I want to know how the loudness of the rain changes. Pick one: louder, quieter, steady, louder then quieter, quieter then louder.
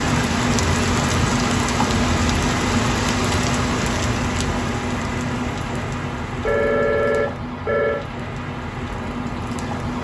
quieter.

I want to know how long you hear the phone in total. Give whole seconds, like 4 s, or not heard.
2 s.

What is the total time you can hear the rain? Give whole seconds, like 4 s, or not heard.
10 s.